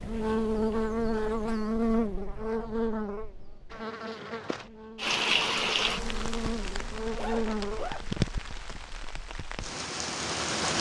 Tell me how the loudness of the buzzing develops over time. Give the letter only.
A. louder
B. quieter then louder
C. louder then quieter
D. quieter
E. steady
B.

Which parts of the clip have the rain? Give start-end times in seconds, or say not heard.
5.0-10.7.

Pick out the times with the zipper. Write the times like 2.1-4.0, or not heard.
7.2-8.1.